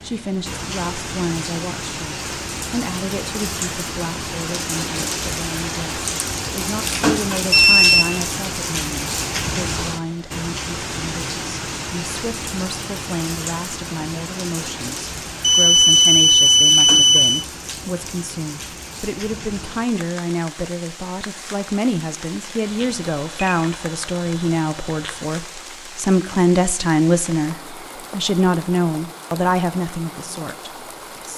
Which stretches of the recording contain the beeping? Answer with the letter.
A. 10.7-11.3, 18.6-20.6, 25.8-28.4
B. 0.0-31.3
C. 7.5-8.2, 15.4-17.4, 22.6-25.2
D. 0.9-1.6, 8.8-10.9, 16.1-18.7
C.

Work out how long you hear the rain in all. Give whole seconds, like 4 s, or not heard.
31 s.